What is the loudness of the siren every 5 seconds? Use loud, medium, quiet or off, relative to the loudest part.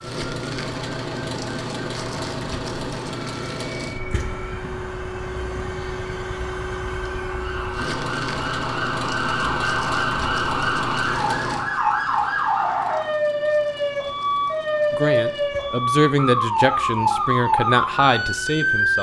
quiet, medium, loud, loud.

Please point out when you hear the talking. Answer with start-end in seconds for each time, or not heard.
14.9-18.9.